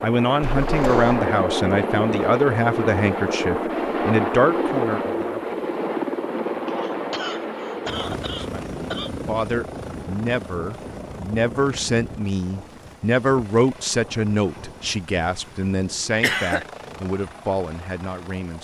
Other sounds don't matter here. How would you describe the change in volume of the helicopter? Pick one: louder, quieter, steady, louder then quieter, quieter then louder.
quieter.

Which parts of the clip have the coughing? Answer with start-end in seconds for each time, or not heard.
0.4-1.2, 6.7-9.1, 16.2-16.6.